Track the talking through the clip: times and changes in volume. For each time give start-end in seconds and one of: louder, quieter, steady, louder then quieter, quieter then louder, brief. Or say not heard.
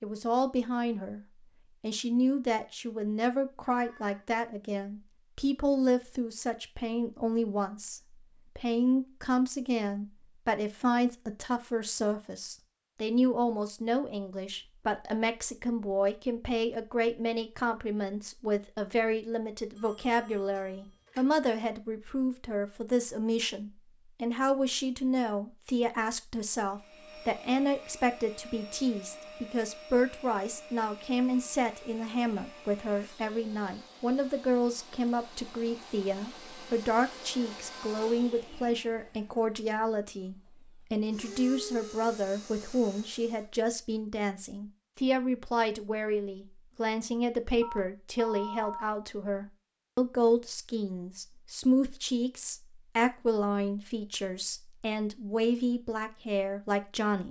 0.0-1.2 brief
1.8-57.2 steady.